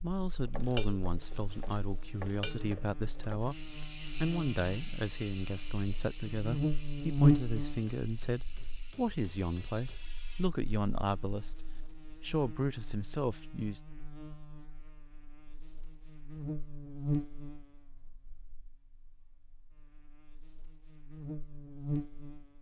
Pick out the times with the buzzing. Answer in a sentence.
You can hear the buzzing from 0.0 to 22.5 s.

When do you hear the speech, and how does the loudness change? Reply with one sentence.
The speech can be heard from 0.0 to 13.8 s, at a steady volume.